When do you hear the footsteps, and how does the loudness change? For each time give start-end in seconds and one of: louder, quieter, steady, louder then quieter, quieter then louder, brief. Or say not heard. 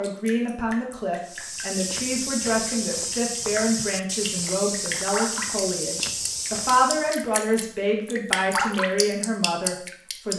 1.2-7.2 steady.